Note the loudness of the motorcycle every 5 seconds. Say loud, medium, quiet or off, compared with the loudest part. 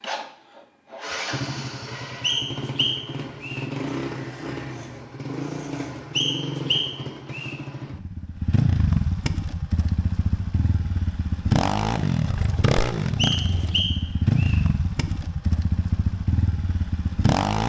medium, loud, loud, loud.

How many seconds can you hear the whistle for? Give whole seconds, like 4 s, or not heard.
4 s.